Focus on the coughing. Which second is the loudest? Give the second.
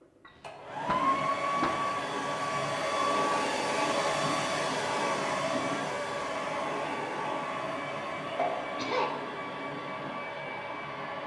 9 s.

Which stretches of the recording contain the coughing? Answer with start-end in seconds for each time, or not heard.
0.2-1.8, 8.3-9.1.